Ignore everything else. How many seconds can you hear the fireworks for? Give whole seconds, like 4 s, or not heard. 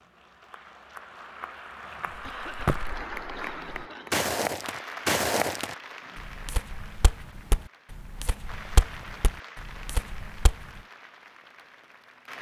not heard.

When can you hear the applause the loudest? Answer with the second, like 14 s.
3 s.